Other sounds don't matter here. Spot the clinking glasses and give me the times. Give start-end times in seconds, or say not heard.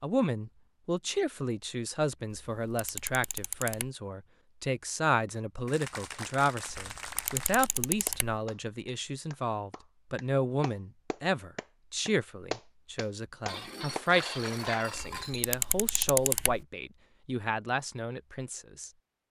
13.4-15.6.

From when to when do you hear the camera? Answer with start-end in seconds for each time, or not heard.
2.3-3.9, 6.8-8.3, 15.0-16.6.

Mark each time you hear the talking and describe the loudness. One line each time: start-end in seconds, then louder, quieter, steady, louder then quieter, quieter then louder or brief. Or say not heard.
0.0-18.9 steady.